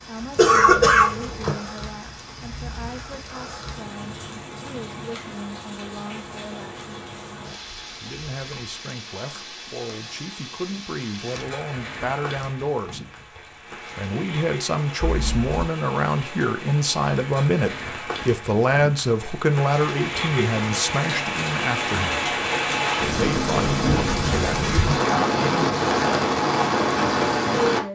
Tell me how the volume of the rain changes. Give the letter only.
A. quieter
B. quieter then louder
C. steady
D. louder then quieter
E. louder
E.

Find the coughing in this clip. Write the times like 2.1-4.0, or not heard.
0.3-1.6.